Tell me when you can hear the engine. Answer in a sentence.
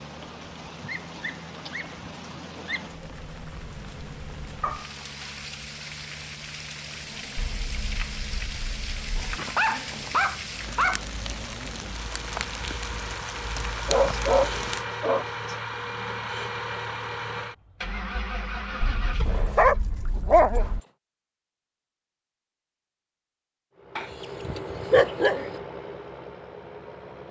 You can hear the engine from 0.0 to 19.7 s and from 23.8 to 27.2 s.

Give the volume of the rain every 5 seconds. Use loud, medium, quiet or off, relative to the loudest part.
medium, loud, loud, off, off, off.